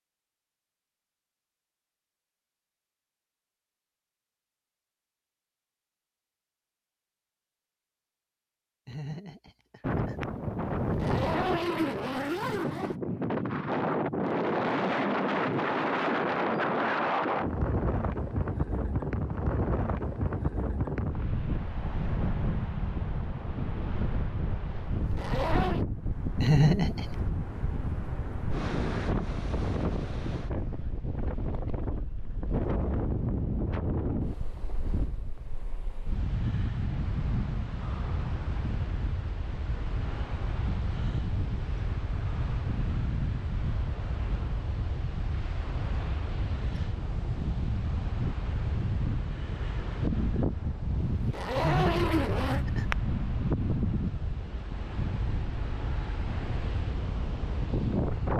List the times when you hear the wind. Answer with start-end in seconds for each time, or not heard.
9.8-58.3.